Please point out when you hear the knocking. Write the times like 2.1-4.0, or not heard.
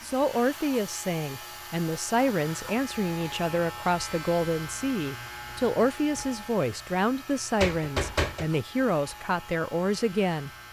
7.6-8.4.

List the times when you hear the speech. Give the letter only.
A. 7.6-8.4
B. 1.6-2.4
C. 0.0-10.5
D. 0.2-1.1
C.